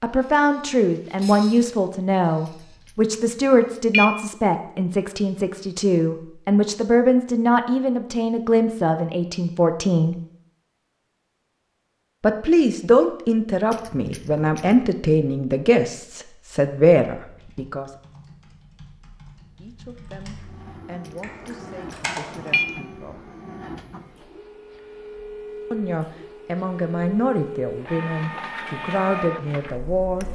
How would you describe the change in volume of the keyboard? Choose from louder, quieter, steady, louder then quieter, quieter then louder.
louder.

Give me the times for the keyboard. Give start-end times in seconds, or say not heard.
17.2-22.7.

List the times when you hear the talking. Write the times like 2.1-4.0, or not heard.
0.0-10.2, 12.2-17.9, 19.6-23.3, 25.7-30.2.